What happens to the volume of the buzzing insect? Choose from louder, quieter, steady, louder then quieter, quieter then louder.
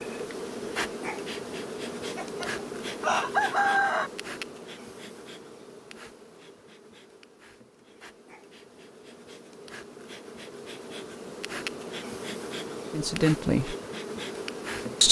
quieter then louder.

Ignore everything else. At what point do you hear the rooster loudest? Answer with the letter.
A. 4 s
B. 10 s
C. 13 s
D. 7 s
A.